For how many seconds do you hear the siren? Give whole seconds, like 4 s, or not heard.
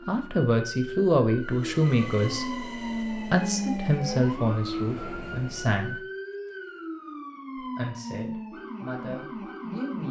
10 s.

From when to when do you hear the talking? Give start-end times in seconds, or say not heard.
0.1-6.0, 7.5-10.0.